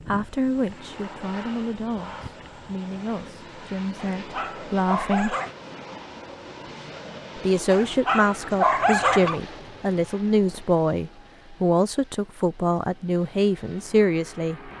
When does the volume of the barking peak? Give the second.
9 s.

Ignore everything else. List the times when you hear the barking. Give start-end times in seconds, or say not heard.
4.0-5.5, 7.7-9.4.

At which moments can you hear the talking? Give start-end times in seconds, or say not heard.
0.1-5.3, 7.3-14.7.